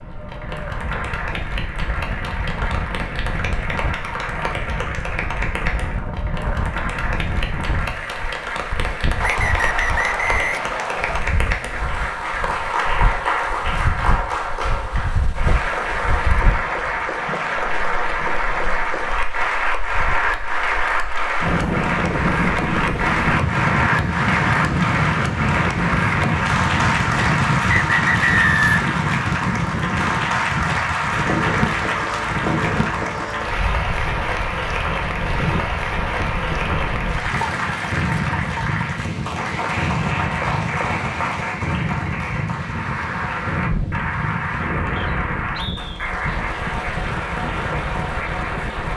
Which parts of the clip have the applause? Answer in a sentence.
The applause can be heard from 0.0 to 48.9 s.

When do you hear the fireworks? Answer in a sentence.
You can't hear the fireworks here.